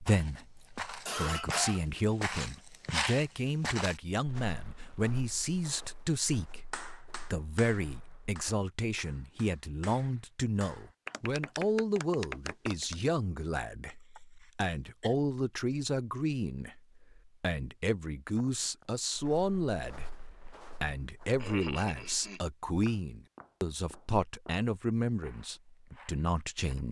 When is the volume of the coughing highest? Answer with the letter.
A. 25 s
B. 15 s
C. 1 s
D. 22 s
C.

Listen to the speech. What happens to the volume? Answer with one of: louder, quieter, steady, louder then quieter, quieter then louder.
steady.